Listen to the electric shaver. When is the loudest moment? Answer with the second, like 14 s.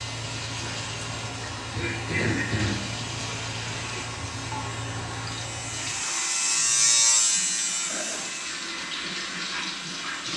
7 s.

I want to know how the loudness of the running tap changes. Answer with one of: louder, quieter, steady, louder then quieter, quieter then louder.
quieter then louder.